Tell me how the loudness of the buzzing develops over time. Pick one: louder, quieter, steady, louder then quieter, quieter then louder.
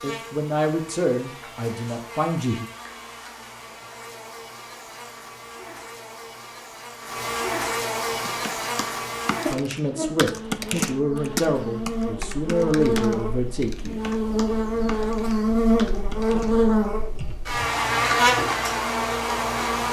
louder.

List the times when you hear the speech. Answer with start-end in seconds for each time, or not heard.
0.0-2.6, 9.5-14.0.